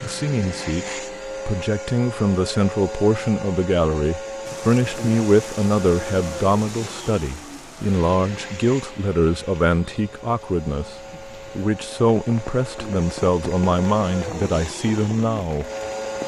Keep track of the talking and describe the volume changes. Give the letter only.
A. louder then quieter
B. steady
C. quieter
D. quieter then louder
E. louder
B.